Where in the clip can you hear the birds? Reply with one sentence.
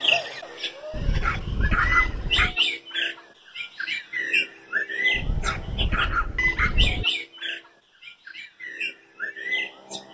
The birds can be heard from 0.0 to 10.0 s.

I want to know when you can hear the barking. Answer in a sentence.
You can hear the barking from 0.9 to 2.5 s and from 5.1 to 7.0 s.